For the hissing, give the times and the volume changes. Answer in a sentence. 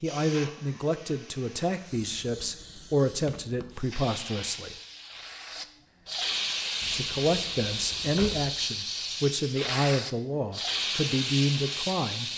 You can hear the hissing from 0.0 to 12.3 s, getting louder.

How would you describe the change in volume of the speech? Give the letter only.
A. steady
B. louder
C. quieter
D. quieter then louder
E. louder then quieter
A.